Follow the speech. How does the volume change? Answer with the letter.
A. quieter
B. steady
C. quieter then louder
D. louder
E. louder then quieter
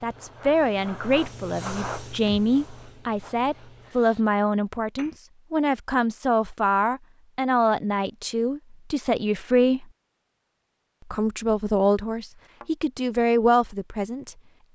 B.